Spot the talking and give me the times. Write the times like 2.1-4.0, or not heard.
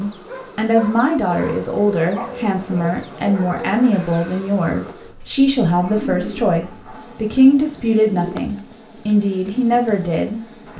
0.0-10.7.